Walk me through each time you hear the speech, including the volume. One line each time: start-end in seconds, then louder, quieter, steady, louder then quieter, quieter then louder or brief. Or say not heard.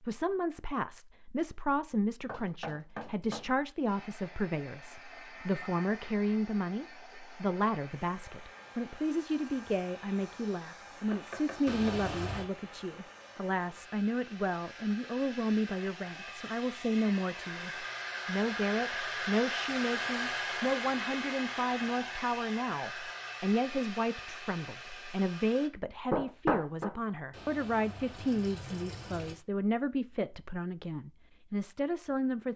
0.0-32.5 steady.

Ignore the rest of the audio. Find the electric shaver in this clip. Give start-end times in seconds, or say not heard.
not heard.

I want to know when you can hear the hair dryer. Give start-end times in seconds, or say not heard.
3.9-25.7.